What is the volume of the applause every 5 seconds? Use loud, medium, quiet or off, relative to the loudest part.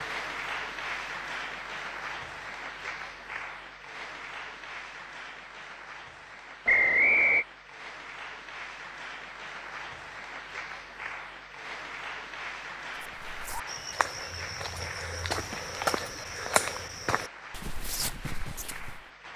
loud, medium, loud, medium.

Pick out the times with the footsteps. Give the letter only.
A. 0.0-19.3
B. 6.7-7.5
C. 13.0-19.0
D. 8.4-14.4
C.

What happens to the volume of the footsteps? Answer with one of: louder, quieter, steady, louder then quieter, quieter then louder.
louder then quieter.